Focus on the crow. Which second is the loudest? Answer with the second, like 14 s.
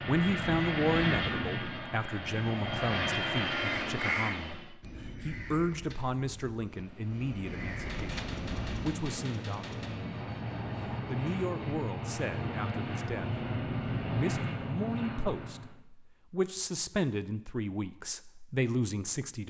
4 s.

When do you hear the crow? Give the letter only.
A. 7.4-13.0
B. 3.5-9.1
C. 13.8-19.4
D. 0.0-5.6
B.